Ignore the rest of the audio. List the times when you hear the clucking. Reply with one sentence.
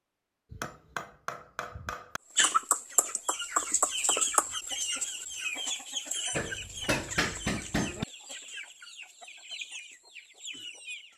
You can hear the clucking from 2.4 to 11.1 s.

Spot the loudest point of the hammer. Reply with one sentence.
The volume of the hammer peaks at 7 seconds.